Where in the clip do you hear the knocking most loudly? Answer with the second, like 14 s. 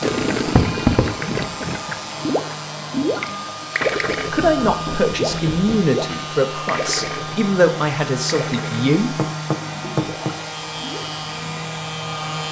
1 s.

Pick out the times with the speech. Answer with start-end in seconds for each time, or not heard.
4.3-9.2.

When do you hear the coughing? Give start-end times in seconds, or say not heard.
not heard.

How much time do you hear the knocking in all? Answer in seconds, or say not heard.
3 s.